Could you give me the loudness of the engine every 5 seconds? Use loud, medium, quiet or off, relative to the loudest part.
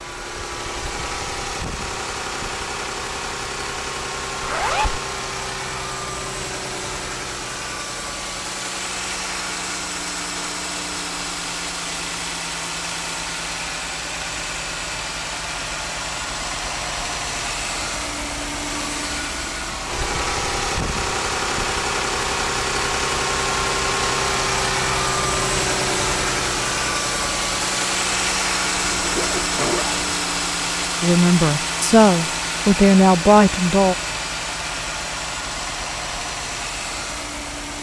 medium, medium, medium, medium, loud, loud, loud, medium.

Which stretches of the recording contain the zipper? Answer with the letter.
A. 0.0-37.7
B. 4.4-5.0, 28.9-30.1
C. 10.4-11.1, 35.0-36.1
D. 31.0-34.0
B.